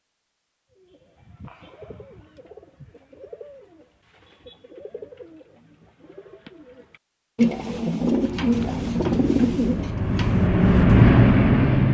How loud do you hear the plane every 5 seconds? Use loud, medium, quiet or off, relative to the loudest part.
off, quiet, loud.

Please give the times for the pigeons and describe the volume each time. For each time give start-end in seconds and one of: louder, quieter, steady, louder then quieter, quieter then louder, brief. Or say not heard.
0.7-11.0 louder.